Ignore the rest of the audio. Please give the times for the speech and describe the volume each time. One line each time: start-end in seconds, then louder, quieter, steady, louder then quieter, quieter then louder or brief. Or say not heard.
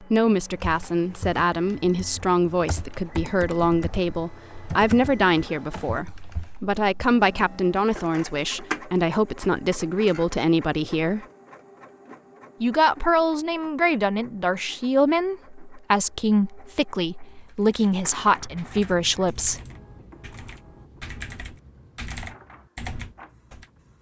0.0-11.2 steady
12.6-19.6 steady.